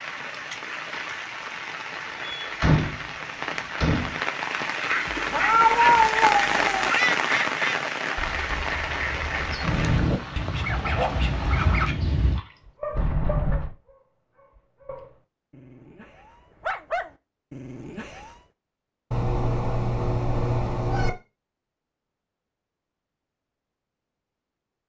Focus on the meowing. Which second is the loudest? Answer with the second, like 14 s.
6 s.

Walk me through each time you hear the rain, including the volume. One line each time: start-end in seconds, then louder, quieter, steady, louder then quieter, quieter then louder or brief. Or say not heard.
0.0-12.6 louder then quieter.